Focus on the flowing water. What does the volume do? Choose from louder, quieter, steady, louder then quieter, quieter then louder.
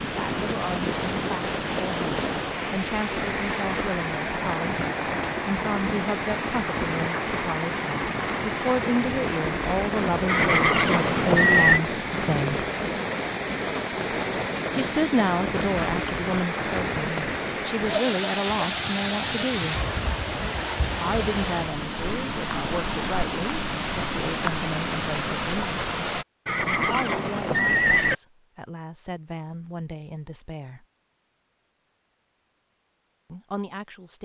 steady.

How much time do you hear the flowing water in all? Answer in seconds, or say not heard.
26 s.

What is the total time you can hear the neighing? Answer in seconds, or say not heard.
3 s.